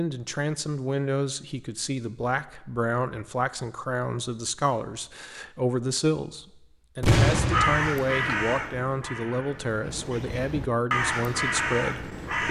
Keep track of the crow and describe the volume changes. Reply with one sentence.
The loudness of the crow goes down, then up.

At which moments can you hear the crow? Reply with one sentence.
The crow can be heard from 7.5 to 12.4 s.